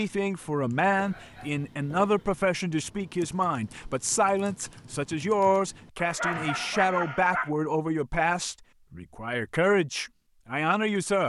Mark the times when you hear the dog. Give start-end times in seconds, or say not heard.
0.8-2.4, 6.0-7.5.